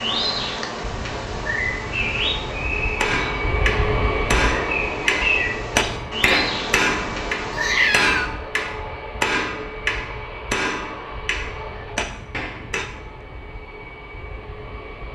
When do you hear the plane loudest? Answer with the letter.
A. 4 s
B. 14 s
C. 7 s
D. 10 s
A.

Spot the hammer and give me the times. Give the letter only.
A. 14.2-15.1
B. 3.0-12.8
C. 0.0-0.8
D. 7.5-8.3
B.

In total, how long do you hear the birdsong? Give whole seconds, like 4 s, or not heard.
8 s.